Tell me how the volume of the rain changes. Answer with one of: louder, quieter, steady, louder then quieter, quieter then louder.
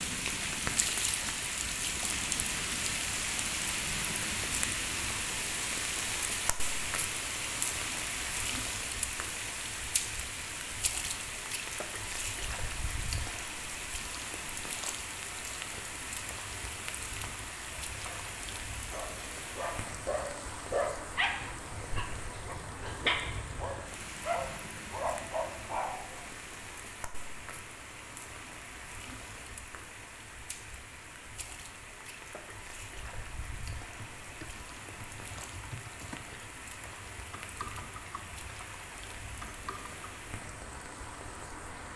quieter.